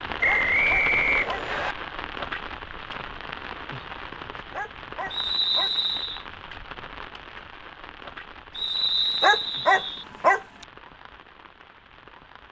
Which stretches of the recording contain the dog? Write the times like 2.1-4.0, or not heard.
0.2-1.4, 4.5-5.8, 9.2-10.7.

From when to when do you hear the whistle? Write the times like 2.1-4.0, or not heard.
0.2-1.8, 5.1-6.2, 8.6-10.1.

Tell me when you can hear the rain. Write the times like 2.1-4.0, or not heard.
0.0-12.4.